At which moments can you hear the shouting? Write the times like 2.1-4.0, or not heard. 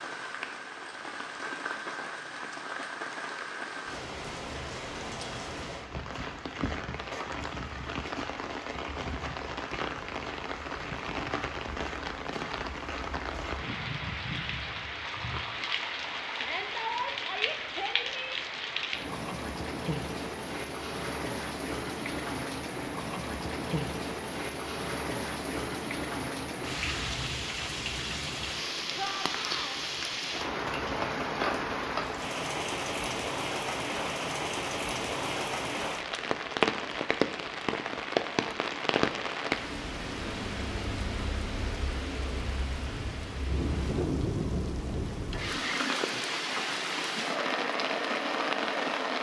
16.4-18.4, 28.9-29.8.